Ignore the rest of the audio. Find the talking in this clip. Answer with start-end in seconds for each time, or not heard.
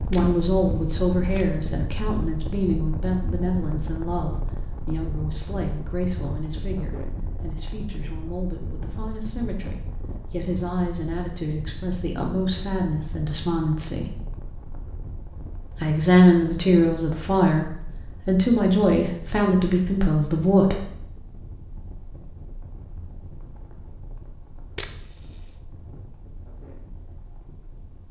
0.1-14.2, 15.8-20.9.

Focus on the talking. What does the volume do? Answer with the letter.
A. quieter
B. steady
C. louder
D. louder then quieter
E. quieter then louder
E.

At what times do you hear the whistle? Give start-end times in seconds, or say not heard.
not heard.